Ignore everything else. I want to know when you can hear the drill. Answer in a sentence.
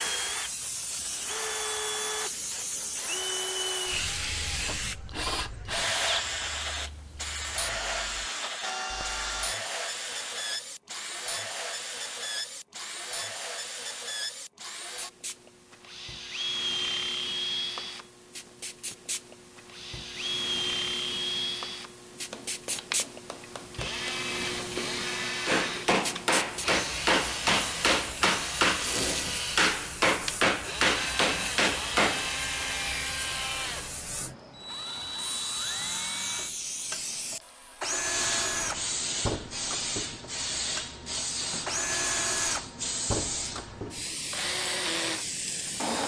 The drill can be heard from 0.0 to 46.0 s.